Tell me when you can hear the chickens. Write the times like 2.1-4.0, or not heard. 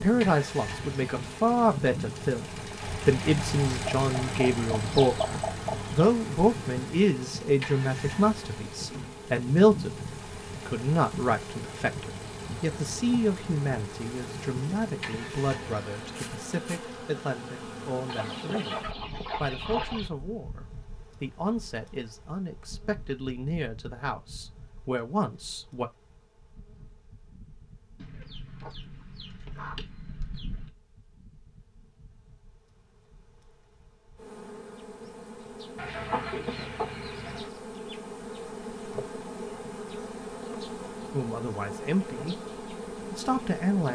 3.9-6.1, 18.1-20.1, 28.0-30.7, 35.8-37.5.